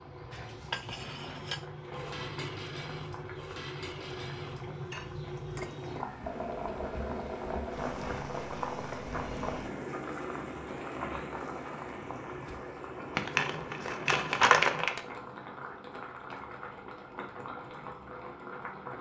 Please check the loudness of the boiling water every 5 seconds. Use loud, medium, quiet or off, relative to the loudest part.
medium, loud, loud, medium.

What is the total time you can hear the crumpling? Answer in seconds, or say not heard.
2 s.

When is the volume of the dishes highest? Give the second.
1 s.